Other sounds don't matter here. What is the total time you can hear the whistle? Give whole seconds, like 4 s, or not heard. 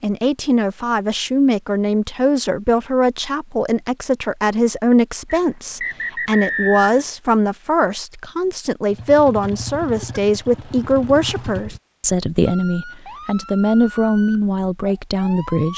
2 s.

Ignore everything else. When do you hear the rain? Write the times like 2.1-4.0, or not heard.
not heard.